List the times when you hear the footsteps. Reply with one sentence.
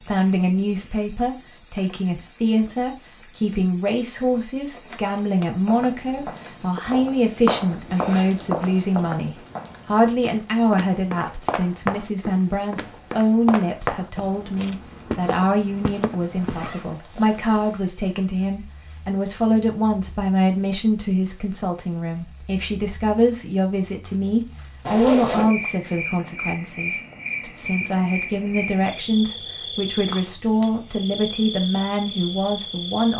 The footsteps can be heard from 5.7 to 16.8 s.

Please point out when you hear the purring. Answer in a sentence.
The purring can't be heard in this clip.